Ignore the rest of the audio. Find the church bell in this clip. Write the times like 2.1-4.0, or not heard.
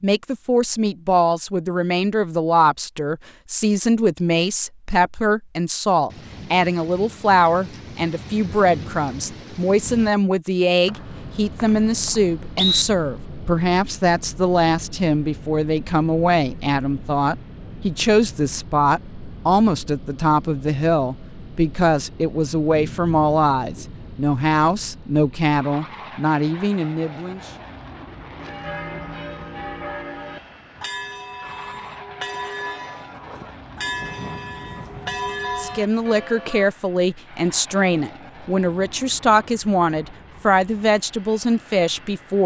28.4-36.7.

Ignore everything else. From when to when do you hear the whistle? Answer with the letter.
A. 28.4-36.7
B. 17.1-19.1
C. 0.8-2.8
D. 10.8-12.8
D.